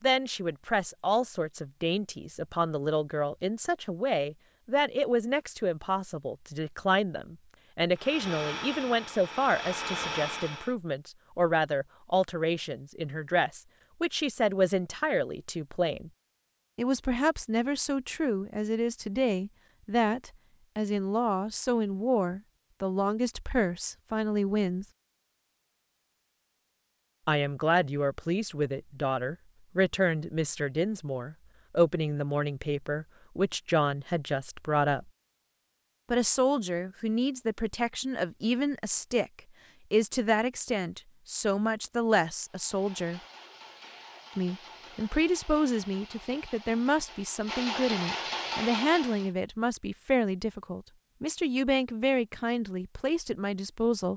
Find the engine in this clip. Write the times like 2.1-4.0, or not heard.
8.0-10.8, 42.4-49.3.